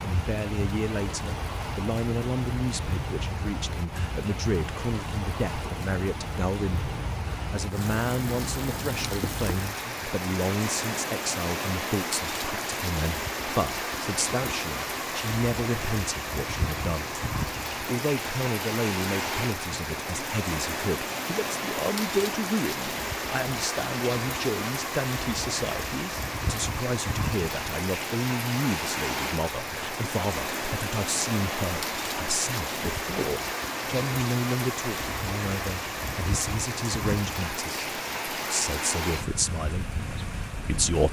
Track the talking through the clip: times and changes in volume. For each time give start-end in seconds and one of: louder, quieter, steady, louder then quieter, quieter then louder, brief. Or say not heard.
0.0-41.0 steady.